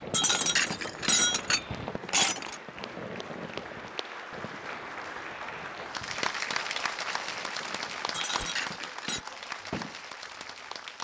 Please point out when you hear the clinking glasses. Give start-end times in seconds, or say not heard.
0.1-2.5, 8.1-9.2.